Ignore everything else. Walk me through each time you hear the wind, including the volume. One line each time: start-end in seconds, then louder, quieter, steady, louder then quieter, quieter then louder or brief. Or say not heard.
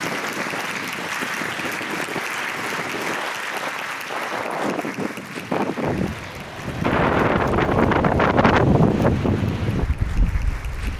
0.0-10.9 louder.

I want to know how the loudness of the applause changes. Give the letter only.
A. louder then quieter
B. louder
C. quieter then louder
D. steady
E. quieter
E.